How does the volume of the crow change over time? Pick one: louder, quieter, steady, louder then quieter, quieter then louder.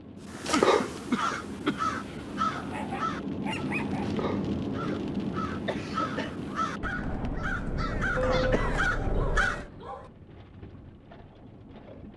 quieter then louder.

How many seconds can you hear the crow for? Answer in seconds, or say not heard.
9 s.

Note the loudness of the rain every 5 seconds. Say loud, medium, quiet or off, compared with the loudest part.
loud, loud, quiet.